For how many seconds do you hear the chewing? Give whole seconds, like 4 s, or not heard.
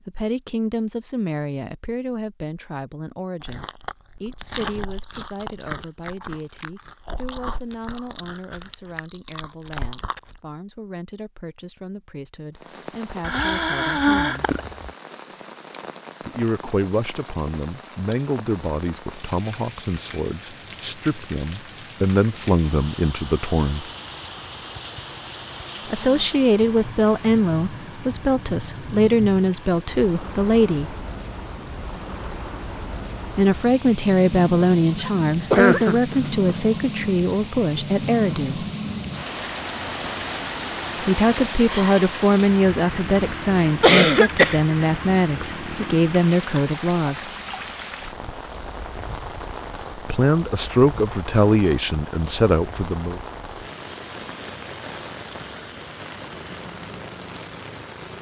7 s.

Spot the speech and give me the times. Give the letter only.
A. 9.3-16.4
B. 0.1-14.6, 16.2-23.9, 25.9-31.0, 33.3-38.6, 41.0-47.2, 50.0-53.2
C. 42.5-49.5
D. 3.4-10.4
B.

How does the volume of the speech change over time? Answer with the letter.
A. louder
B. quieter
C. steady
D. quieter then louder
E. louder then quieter
A.